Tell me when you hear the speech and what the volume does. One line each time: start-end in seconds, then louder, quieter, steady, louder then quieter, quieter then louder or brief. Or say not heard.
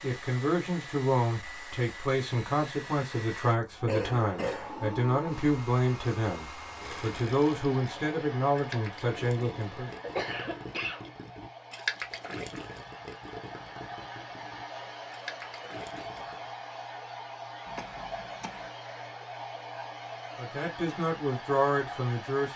0.0-9.9 steady
20.4-22.5 brief.